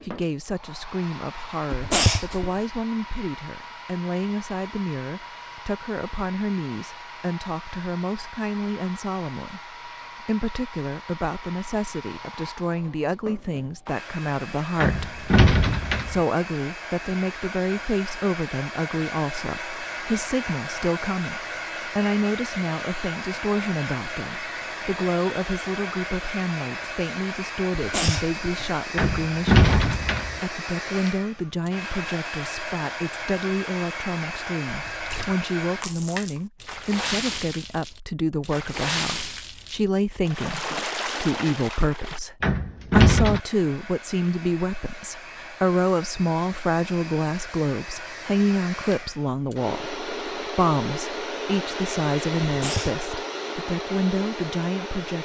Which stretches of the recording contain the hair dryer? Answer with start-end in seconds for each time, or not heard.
0.0-35.9, 43.2-55.2.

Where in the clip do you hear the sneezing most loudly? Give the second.
2 s.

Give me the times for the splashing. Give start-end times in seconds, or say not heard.
34.9-42.2.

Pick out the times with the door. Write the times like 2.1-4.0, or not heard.
14.8-16.2, 28.9-30.4, 42.4-43.4.